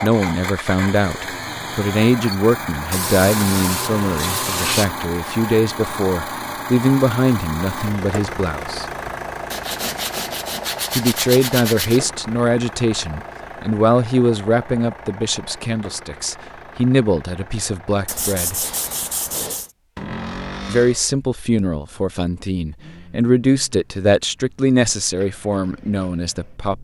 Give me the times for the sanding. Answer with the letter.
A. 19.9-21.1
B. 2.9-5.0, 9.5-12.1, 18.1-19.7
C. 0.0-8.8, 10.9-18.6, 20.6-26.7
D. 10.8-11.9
B.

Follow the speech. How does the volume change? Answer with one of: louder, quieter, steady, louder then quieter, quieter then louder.
steady.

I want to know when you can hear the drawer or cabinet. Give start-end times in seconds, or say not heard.
19.9-21.1.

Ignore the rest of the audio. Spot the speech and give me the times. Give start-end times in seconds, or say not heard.
0.0-8.8, 10.9-18.6, 20.6-26.7.